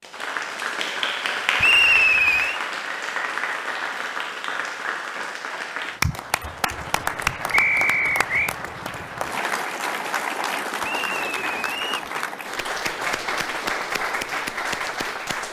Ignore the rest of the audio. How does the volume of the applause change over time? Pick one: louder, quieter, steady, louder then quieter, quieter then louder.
steady.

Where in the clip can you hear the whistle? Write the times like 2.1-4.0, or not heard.
1.6-2.6, 7.5-8.6, 10.8-12.1.